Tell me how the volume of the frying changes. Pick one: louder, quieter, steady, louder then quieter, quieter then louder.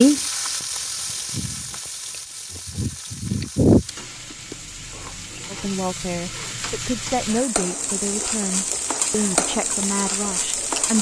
quieter then louder.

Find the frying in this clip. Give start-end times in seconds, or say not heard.
0.0-10.9.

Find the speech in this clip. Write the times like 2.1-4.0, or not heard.
5.5-10.9.